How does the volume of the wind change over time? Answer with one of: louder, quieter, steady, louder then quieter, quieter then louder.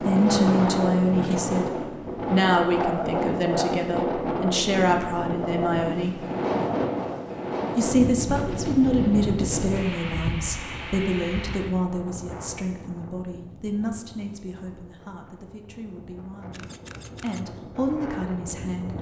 quieter.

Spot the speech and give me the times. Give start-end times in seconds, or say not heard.
0.0-1.7, 2.3-6.2, 7.8-18.9.